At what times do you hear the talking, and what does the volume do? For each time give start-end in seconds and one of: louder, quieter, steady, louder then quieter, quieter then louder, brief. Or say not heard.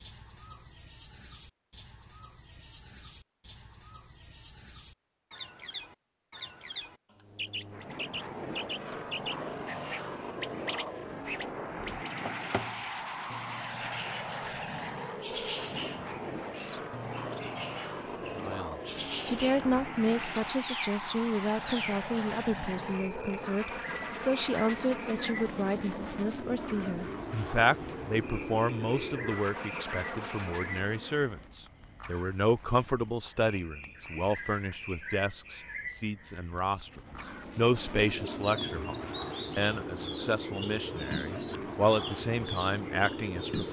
18.4-43.6 steady.